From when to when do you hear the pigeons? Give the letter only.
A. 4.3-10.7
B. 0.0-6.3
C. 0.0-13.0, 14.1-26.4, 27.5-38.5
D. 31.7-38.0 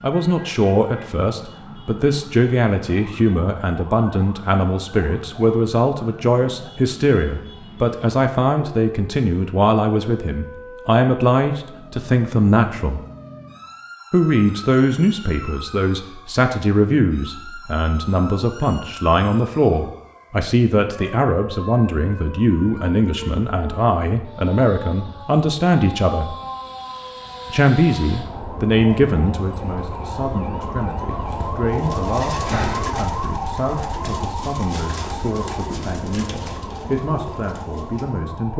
D.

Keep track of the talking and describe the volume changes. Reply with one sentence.
The volume of the talking goes down.